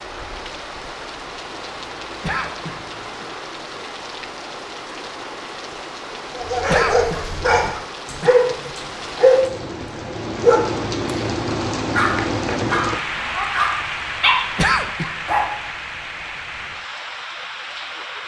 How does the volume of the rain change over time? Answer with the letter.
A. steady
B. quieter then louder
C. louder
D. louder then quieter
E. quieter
D.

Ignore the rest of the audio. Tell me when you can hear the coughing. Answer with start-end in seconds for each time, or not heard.
2.2-3.4, 6.7-8.4, 14.6-15.2.